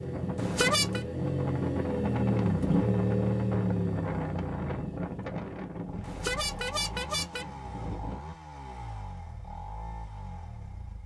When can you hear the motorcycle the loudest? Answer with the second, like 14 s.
3 s.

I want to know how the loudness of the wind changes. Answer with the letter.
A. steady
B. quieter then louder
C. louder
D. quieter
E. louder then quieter
D.